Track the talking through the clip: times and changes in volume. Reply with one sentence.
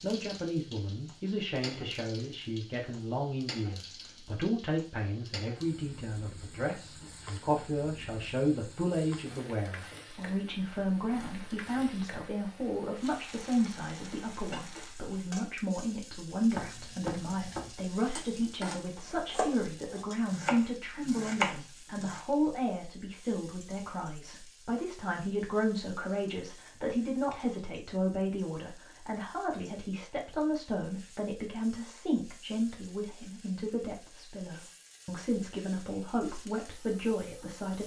You can hear the talking from 0.0 to 37.8 s, at a steady volume.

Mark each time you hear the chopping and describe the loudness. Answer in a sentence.
The chopping can be heard from 16.5 to 22.2 s, getting louder.